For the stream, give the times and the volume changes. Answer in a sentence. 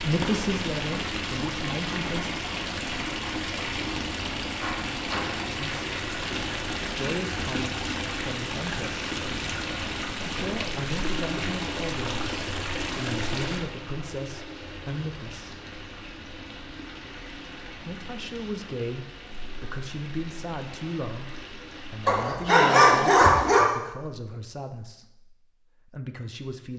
You can hear the stream from 0.0 to 22.2 s, getting quieter.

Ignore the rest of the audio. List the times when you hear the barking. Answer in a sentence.
You can hear the barking from 22.1 to 23.6 s.